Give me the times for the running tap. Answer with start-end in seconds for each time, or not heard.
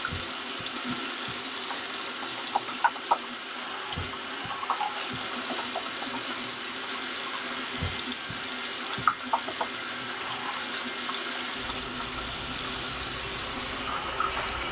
0.0-14.6.